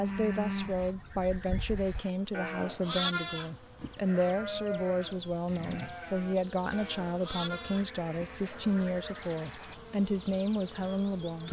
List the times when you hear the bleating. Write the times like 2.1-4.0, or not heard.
0.0-9.1.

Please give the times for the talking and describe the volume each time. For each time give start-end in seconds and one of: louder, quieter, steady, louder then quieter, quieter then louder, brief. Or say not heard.
0.0-11.4 steady.